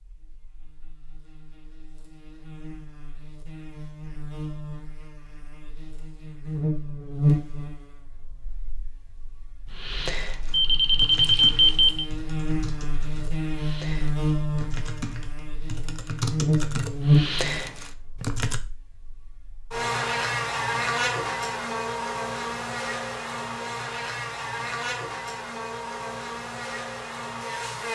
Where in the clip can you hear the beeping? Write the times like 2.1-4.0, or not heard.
10.5-12.1.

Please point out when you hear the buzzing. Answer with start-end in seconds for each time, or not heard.
0.0-27.9.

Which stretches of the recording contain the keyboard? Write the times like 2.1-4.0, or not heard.
9.7-18.6.